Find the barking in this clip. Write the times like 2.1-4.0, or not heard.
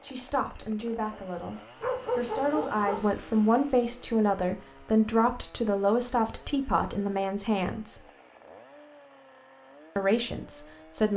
1.8-3.1.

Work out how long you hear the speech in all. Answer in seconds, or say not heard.
9 s.